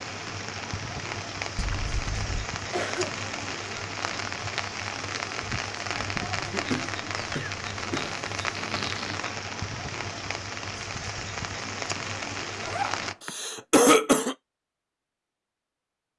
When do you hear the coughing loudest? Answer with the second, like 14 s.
14 s.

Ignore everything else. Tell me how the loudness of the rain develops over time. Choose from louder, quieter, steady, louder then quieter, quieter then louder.
steady.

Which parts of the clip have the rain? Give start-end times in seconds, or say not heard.
0.0-13.2.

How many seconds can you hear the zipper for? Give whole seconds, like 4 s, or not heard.
3 s.